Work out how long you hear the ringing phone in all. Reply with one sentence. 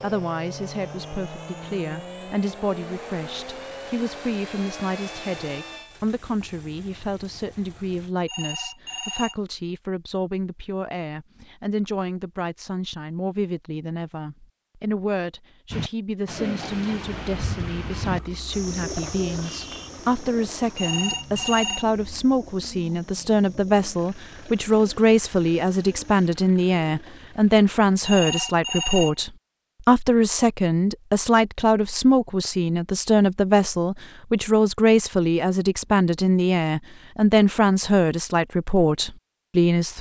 The ringing phone can be heard for 3 seconds in total.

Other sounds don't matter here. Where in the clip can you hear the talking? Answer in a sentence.
You can hear the talking from 0.0 to 39.9 s.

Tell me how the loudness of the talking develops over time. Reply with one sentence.
The volume of the talking goes up.